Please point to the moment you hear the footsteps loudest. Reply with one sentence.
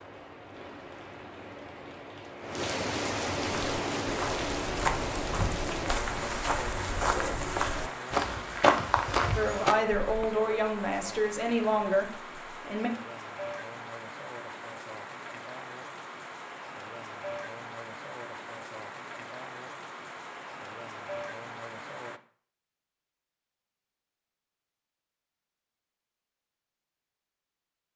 The volume of the footsteps peaks at 9 seconds.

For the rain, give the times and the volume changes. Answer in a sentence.
You can hear the rain from 0.0 to 22.2 s, getting quieter.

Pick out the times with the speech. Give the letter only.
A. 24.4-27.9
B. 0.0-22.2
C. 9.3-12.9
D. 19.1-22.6
C.